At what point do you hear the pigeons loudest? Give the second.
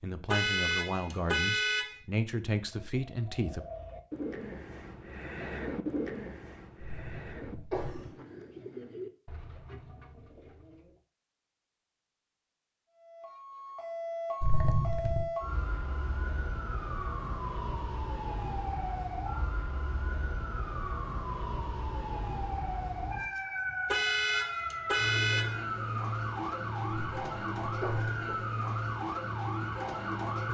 6 s.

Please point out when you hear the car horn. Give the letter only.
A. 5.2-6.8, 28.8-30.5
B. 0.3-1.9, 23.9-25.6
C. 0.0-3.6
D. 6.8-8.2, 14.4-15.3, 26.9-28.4
B.